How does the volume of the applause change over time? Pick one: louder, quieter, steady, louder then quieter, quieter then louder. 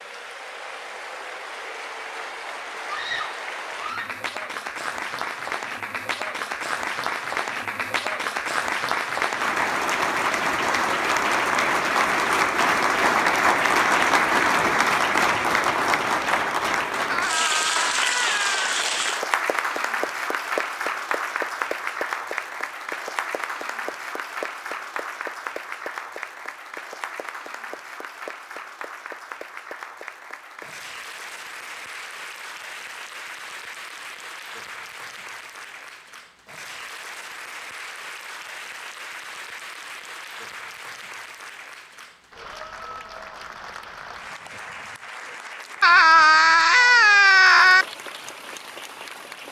louder then quieter.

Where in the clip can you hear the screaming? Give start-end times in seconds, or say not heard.
2.9-4.2, 17.1-18.6, 45.8-47.9.